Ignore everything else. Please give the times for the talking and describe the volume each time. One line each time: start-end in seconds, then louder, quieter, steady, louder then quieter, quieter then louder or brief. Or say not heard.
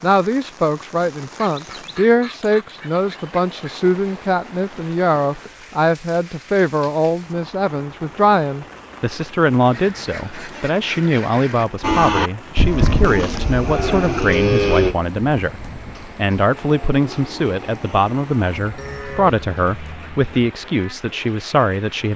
0.0-22.1 steady.